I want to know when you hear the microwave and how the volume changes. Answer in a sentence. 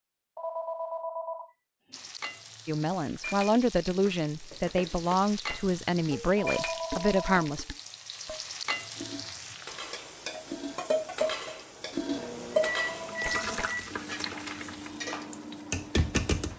The microwave can be heard from 12.1 to 16.5 s, getting quieter.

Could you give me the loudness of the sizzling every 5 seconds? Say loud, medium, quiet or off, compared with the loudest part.
medium, medium, loud, loud.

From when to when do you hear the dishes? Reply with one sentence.
The dishes can be heard from 3.9 to 15.3 s.